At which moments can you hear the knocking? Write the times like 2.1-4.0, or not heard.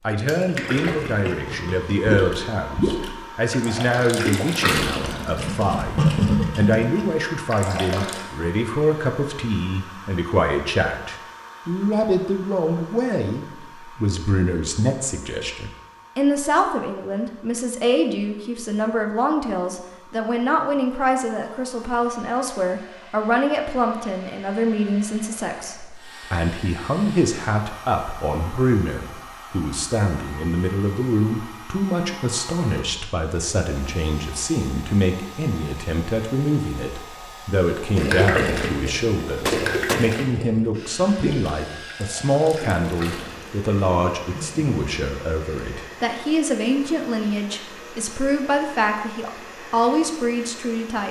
39.5-40.0.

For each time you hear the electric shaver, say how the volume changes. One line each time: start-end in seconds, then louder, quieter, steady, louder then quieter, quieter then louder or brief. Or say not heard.
not heard.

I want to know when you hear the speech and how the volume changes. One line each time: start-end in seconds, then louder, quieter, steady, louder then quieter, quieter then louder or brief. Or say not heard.
0.1-51.0 steady.